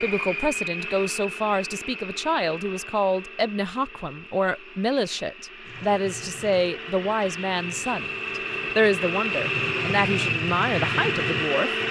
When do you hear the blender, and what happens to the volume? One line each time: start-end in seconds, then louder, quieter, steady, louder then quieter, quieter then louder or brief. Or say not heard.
0.0-11.8 quieter then louder.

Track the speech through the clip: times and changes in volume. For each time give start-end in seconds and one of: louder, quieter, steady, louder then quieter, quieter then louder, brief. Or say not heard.
0.0-11.7 steady.